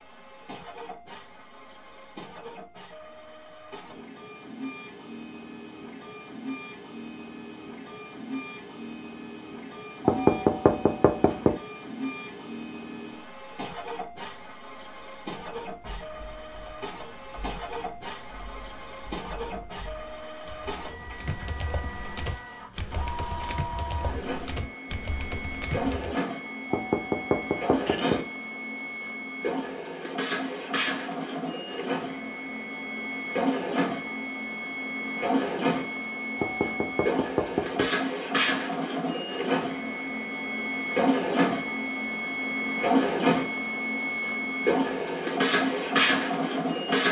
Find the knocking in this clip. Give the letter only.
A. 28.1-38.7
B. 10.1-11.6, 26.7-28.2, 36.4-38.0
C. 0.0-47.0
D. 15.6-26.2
B.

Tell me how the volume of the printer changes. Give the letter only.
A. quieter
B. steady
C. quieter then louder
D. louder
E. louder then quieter
D.